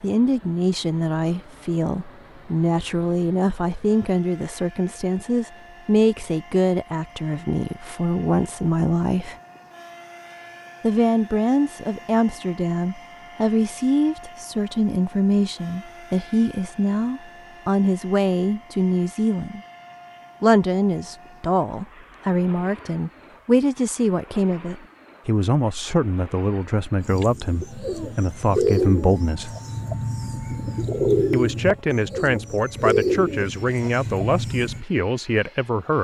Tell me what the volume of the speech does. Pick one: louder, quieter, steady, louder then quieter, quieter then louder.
steady.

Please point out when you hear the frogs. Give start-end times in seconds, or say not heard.
not heard.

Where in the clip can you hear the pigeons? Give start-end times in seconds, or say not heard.
27.0-34.9.